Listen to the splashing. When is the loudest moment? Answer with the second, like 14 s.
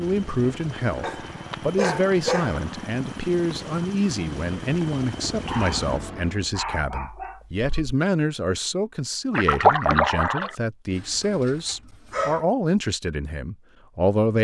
10 s.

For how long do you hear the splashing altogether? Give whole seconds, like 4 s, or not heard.
2 s.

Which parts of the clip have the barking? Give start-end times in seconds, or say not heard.
1.0-2.6, 5.5-8.0, 10.9-12.4.